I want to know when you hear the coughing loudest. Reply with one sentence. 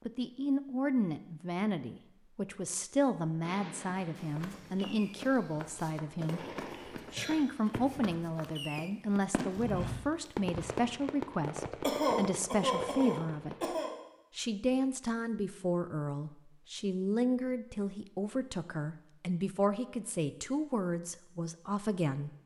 The loudest moment of the coughing is at 12 seconds.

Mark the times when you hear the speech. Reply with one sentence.
You can hear the speech from 0.1 to 6.4 s, from 7.1 to 13.6 s and from 14.3 to 22.3 s.